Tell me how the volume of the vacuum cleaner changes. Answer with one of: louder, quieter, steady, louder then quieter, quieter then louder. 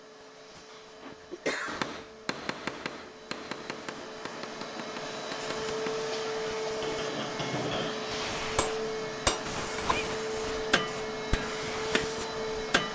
louder.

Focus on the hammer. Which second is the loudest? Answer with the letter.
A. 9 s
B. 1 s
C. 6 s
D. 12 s
A.